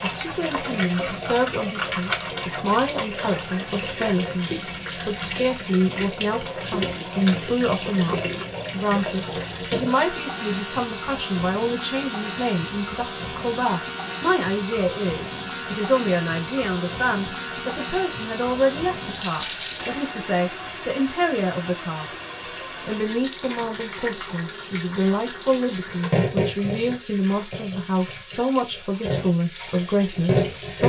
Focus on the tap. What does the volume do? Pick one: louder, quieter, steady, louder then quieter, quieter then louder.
steady.